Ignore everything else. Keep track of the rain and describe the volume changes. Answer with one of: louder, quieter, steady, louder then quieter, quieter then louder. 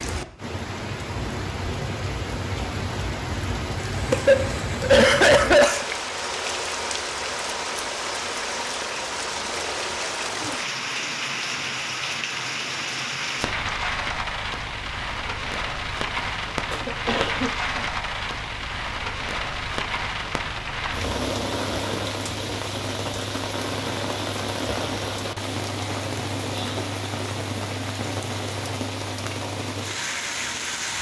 steady.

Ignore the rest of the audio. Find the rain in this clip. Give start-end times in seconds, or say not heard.
0.0-30.9.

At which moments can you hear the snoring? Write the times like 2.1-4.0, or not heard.
not heard.